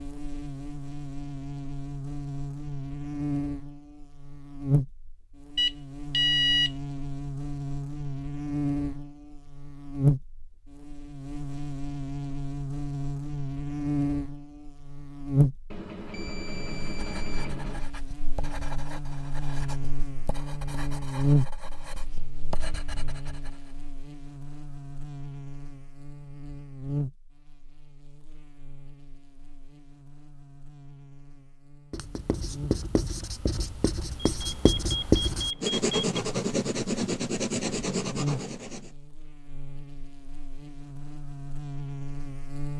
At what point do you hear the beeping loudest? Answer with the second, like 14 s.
6 s.